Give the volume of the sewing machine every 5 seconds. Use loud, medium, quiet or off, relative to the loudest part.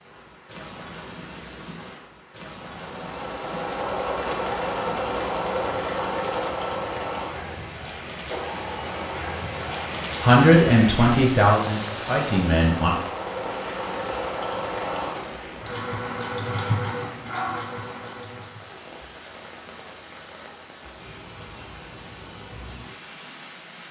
loud, loud, loud, loud, off.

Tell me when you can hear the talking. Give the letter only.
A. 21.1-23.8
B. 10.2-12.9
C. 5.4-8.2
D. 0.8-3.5
B.